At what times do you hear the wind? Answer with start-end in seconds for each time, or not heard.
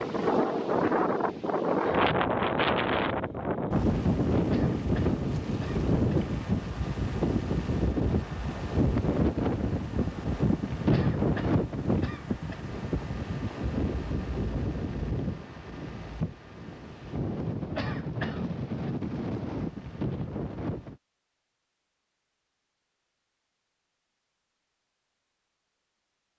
0.0-21.0.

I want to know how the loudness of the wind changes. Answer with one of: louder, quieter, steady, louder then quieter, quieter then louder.
quieter.